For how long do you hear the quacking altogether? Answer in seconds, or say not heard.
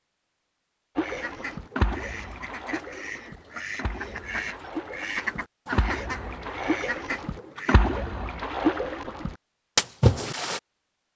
7 s.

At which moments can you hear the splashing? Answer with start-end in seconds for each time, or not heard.
0.9-10.6.